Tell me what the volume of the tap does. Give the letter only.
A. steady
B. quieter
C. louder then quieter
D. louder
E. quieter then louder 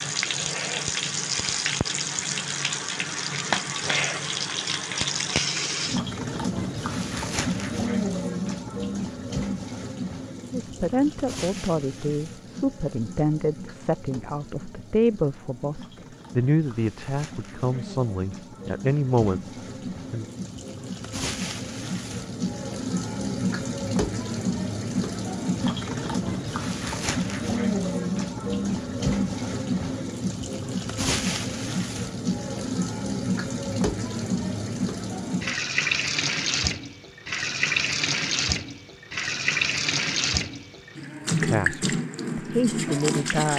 E.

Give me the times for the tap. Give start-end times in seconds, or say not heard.
0.0-43.5.